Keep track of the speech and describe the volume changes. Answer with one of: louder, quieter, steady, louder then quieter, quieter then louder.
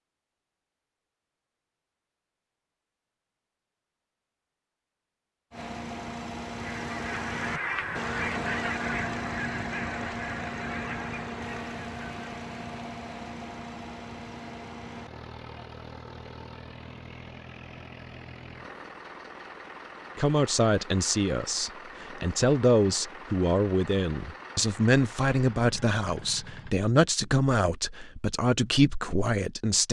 steady.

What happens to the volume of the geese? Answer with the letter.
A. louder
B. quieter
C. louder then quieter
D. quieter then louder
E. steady
B.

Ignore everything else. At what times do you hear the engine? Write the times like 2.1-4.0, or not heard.
5.5-26.8.